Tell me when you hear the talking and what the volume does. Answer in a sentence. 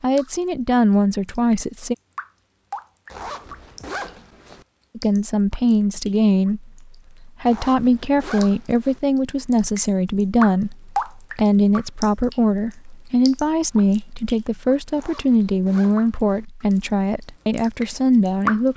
You can hear the talking briefly from 0.0 to 1.9 s; and from 5.0 to 18.7 s, at a steady volume.